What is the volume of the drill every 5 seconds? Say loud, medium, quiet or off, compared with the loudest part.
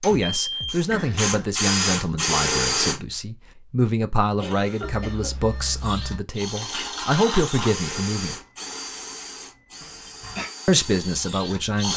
loud, medium, medium.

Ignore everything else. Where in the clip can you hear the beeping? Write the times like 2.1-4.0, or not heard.
0.1-0.8, 4.8-6.2, 8.3-10.2.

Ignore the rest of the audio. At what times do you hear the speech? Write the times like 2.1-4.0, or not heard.
0.0-8.3, 10.7-11.9.